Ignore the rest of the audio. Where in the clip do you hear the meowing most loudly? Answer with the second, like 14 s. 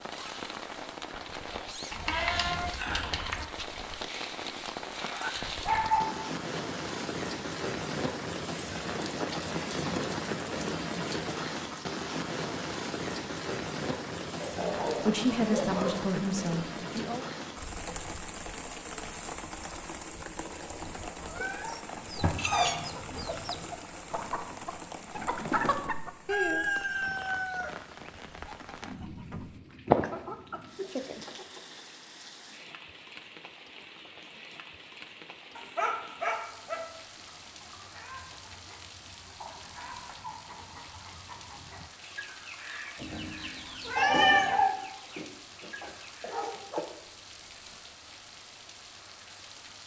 44 s.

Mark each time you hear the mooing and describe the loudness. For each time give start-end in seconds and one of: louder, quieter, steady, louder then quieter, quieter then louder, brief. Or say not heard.
not heard.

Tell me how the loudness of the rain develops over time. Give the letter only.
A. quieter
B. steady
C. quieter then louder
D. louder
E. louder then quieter
A.